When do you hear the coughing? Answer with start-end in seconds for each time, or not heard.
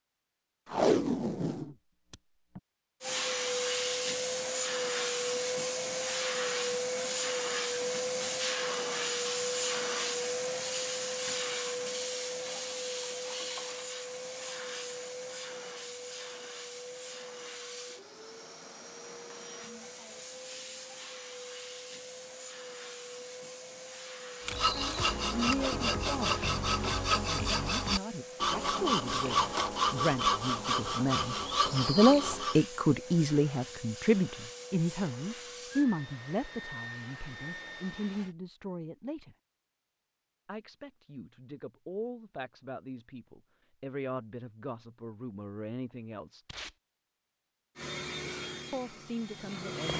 not heard.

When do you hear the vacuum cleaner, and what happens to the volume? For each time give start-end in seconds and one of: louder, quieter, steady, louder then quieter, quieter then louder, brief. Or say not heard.
3.0-38.4 quieter
47.8-49.9 brief.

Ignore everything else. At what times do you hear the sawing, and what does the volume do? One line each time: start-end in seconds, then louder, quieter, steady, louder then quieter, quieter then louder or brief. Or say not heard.
24.4-32.6 steady.